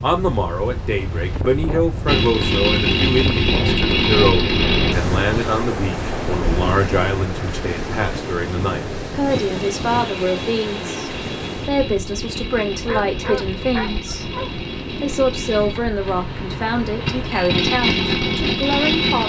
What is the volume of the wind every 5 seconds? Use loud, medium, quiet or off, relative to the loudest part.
loud, loud, medium, medium.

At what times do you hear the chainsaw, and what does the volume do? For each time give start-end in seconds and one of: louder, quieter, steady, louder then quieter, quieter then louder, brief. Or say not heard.
2.0-5.0 brief
9.3-19.2 louder.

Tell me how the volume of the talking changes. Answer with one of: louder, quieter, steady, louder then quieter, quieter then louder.
steady.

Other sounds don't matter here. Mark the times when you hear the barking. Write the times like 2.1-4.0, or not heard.
12.8-14.6.